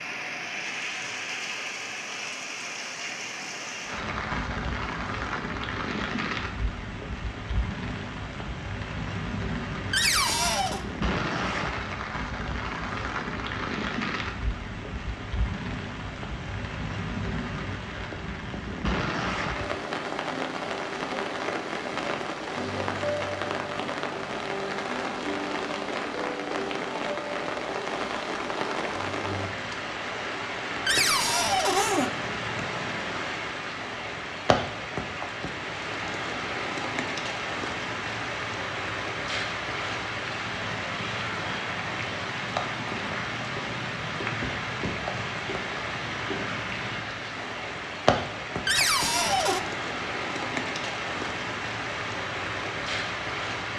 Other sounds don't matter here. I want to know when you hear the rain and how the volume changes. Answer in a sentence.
You can hear the rain from 0.0 to 53.7 s, at a steady volume.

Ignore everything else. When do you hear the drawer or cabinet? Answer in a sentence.
You can hear the drawer or cabinet from 9.9 to 10.8 s, from 30.9 to 32.1 s and from 48.6 to 49.6 s.